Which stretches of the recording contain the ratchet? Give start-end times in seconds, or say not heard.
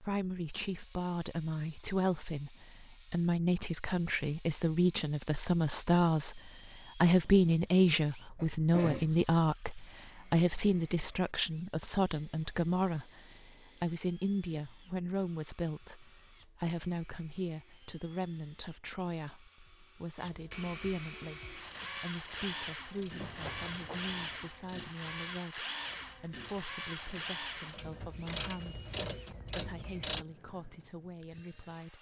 21.4-30.2.